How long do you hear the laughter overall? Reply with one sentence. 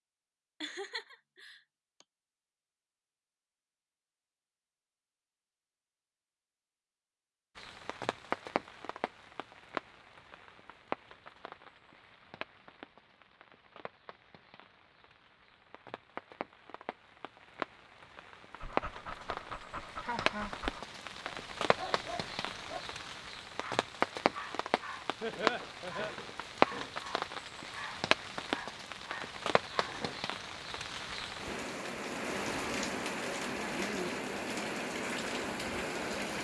The laughter can be heard for 3 seconds in total.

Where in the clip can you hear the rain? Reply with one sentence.
You can hear the rain from 7.5 to 36.3 s.